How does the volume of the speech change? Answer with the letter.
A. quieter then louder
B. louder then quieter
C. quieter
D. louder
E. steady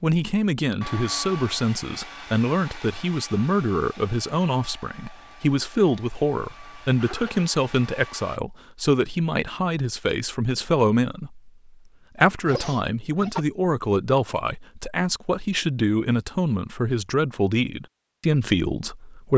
E.